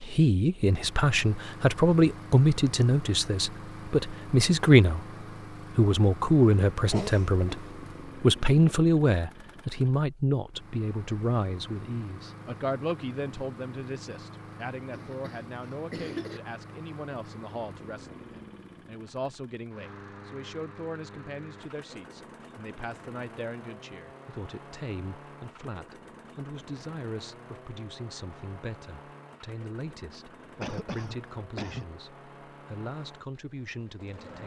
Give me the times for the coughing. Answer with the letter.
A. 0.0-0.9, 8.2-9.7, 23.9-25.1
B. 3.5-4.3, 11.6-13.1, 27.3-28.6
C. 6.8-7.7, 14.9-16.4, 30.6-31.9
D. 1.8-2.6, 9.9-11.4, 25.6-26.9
C.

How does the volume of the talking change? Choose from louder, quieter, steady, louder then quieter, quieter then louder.
quieter.